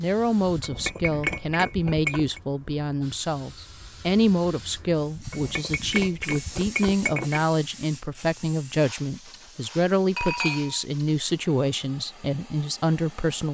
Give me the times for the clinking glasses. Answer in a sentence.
You can hear the clinking glasses from 0.4 to 2.4 s, from 5.1 to 7.5 s and from 10.2 to 10.8 s.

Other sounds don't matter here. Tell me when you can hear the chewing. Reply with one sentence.
You can't hear the chewing here.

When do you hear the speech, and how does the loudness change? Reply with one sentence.
The speech can be heard from 0.0 to 13.4 s, at a steady volume.